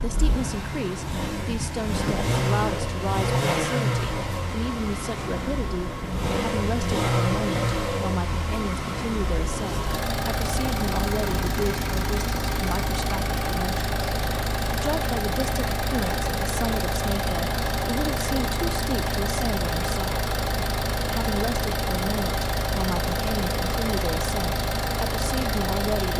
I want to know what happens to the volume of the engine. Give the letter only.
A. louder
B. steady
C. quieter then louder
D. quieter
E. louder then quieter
B.